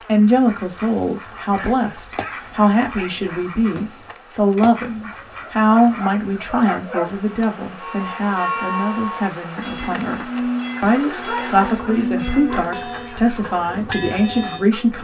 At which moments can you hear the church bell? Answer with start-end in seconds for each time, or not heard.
7.8-14.7.